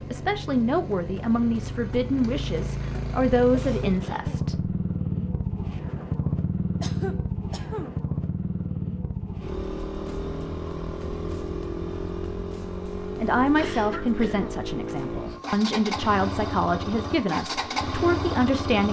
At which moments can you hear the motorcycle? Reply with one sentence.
The motorcycle can be heard from 0.0 to 18.8 s.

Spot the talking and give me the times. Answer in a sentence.
The talking can be heard from 0.0 to 4.8 s and from 13.2 to 18.8 s.